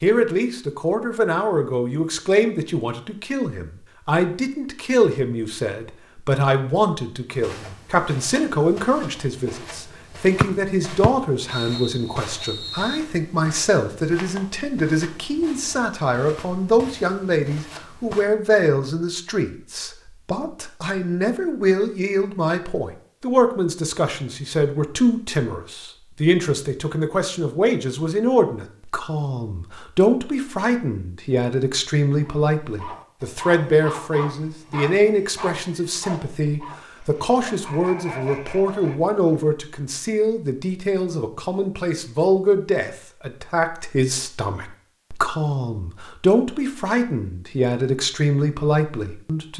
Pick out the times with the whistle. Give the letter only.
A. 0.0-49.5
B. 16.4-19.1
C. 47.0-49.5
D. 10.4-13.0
D.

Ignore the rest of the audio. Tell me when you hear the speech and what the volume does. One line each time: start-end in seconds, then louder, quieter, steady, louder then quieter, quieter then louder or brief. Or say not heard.
0.0-49.5 steady.